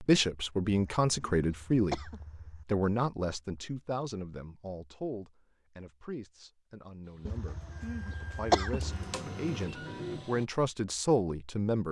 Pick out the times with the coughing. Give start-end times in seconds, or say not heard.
0.7-2.6, 7.2-9.1.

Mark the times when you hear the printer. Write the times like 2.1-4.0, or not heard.
7.0-10.4.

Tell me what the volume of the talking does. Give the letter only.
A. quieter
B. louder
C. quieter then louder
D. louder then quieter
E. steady
C.